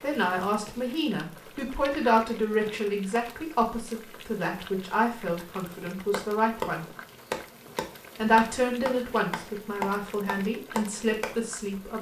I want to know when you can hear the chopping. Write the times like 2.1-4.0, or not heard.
6.1-11.3.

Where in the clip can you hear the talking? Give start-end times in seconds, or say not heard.
0.0-6.8, 8.2-11.9.